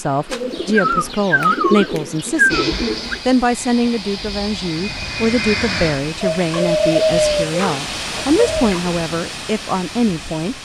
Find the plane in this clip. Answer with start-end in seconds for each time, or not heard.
2.5-7.5.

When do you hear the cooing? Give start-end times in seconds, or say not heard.
0.3-3.2, 6.2-8.9.